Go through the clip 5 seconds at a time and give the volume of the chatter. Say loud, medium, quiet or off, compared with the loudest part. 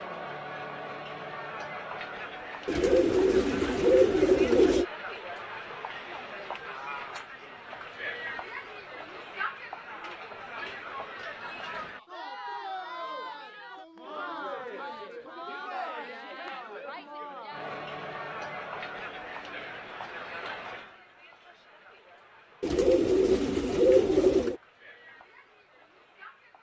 loud, loud, loud, loud, medium, quiet.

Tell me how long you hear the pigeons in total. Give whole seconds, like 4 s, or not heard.
4 s.